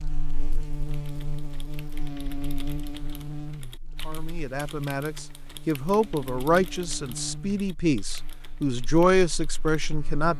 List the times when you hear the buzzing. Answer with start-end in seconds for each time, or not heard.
0.0-10.3.